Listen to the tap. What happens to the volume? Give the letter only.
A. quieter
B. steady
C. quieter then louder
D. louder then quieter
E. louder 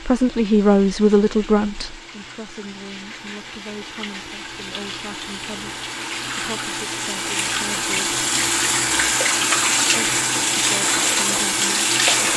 E.